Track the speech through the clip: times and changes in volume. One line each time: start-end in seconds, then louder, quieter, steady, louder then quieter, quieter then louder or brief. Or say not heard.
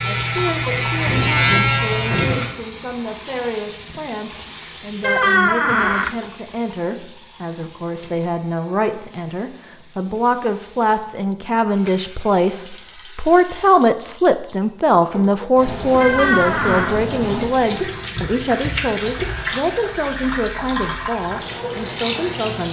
0.0-22.6 louder then quieter.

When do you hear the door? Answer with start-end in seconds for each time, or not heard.
5.0-6.2, 16.0-17.0.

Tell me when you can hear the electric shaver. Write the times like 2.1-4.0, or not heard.
0.0-2.5.